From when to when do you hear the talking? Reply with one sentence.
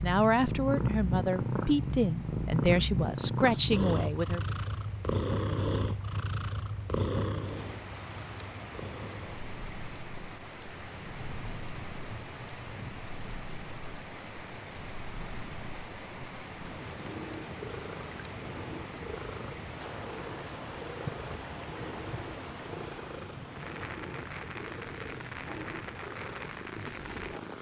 The talking can be heard from 0.0 to 4.4 s.